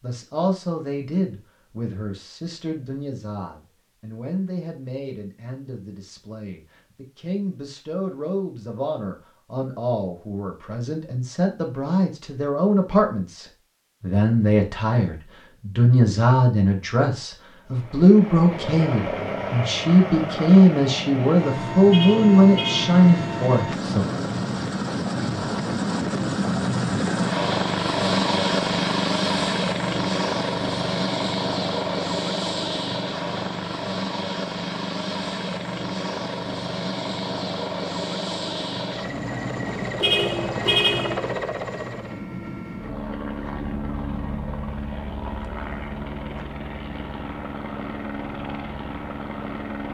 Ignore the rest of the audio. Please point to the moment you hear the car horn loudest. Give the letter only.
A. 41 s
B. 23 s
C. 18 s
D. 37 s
A.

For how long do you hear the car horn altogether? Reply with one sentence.
You can hear the car horn for 2 seconds altogether.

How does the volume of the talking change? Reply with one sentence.
The volume of the talking goes up.